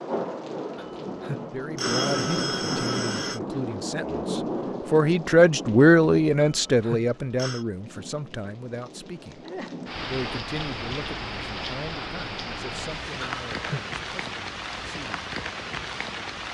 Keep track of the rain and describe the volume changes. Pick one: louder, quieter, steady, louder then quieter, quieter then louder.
quieter then louder.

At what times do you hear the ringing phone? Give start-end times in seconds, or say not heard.
0.8-3.4, 6.5-7.7, 13.2-13.8.